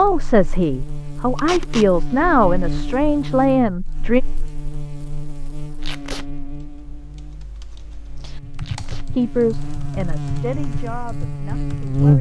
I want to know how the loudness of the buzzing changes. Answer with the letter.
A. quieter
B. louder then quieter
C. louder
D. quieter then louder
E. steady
D.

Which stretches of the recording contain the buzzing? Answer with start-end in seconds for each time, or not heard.
0.0-12.1.